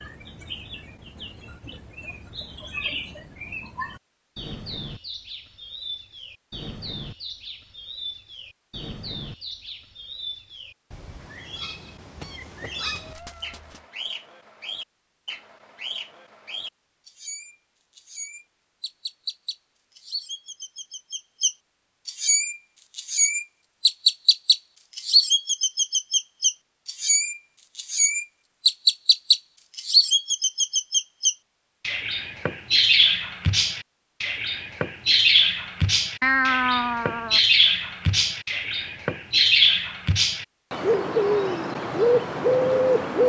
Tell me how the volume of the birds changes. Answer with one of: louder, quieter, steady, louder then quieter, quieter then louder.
louder.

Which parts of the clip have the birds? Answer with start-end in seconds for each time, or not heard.
0.0-43.2.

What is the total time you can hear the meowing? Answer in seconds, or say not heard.
3 s.